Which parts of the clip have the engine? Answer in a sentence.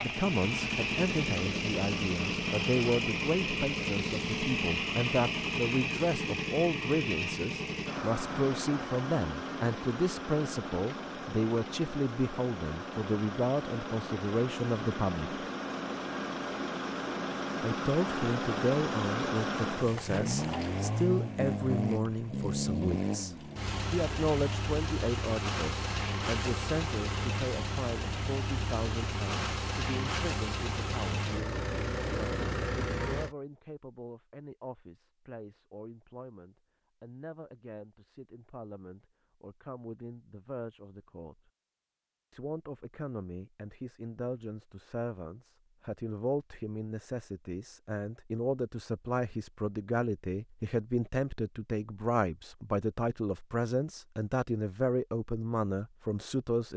The engine can be heard from 0.0 to 33.4 s.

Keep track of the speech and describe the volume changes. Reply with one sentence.
The volume of the speech goes down, then up.